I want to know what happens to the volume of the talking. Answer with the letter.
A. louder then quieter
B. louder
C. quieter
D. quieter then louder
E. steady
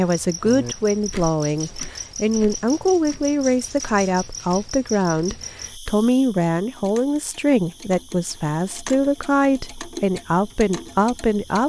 E.